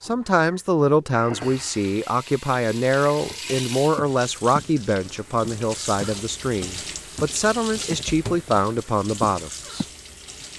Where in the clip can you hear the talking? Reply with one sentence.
You can hear the talking from 0.0 to 9.8 s.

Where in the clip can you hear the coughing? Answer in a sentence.
You can't hear the coughing here.